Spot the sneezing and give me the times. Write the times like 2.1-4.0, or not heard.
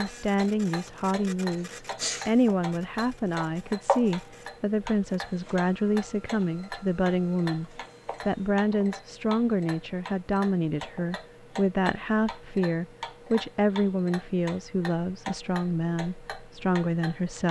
1.6-2.3.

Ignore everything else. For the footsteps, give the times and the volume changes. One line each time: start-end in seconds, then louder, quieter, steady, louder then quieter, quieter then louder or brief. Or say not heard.
not heard.